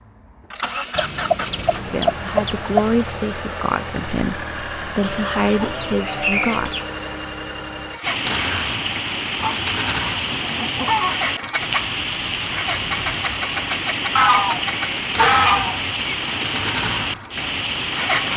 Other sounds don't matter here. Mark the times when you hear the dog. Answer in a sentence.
You can't hear the dog here.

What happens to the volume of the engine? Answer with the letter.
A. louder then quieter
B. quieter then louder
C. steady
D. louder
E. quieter
C.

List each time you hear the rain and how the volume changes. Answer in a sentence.
The rain can be heard from 8.0 to 18.3 s, at a steady volume.